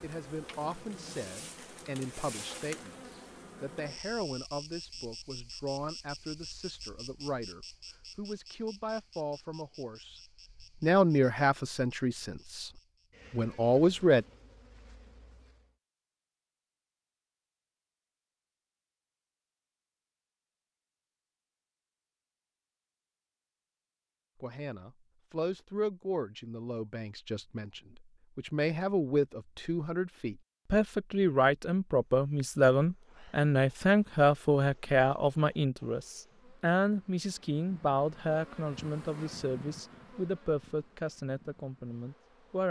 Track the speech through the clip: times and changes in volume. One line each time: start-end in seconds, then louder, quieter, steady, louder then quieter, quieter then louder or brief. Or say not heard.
0.0-12.7 louder
13.3-14.2 brief
24.4-42.6 louder then quieter.